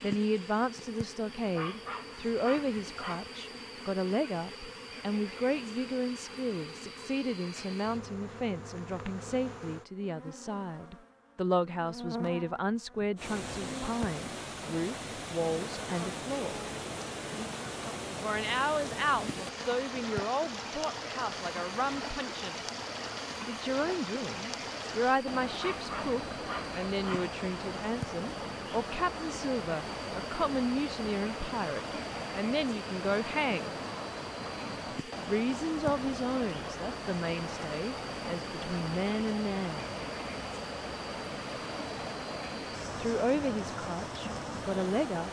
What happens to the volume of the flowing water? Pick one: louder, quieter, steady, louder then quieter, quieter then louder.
steady.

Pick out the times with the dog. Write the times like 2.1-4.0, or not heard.
1.6-3.3, 25.6-27.4.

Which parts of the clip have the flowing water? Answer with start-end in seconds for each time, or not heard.
13.2-45.2.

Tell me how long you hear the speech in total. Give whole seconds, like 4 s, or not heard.
39 s.